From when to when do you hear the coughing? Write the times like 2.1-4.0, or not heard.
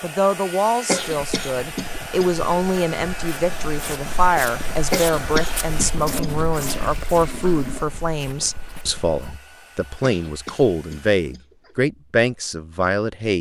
0.8-2.4, 4.9-6.5, 10.0-11.8.